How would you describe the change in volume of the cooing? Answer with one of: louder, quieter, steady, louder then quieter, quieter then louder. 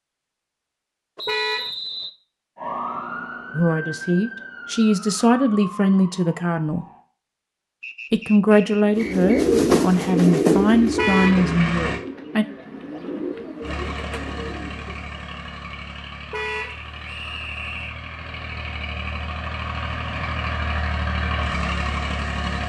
quieter.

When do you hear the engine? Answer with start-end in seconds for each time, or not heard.
10.1-12.0, 13.6-22.6.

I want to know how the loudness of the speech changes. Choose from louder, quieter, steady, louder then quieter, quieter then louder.
steady.